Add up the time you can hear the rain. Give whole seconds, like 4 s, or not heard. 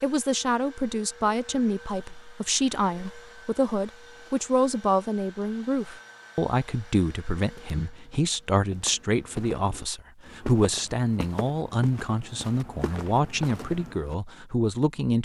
not heard.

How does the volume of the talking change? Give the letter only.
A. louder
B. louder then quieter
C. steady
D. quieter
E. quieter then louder
C.